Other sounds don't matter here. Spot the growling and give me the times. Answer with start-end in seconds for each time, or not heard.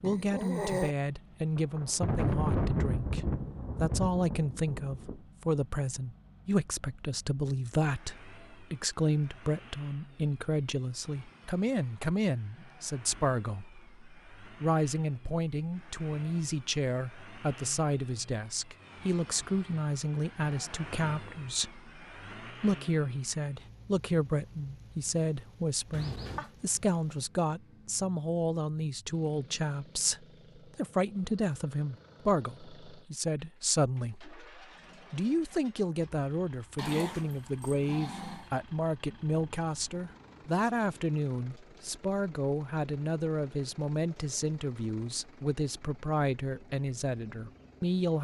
0.0-0.9, 25.9-26.5, 36.8-38.5.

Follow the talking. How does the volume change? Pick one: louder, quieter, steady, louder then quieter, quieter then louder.
steady.